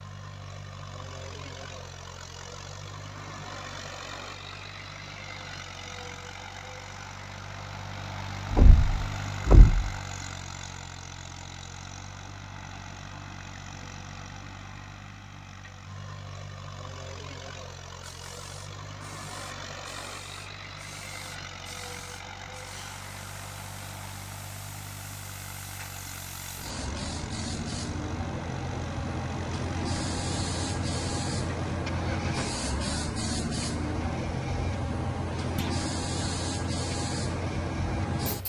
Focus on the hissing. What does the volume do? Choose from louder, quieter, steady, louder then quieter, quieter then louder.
louder.